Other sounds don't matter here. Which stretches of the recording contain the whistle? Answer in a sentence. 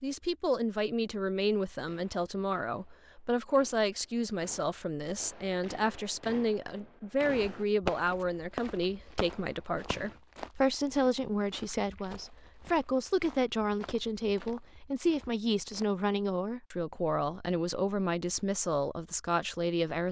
You can't hear the whistle here.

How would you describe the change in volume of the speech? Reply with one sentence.
The loudness of the speech stays about the same.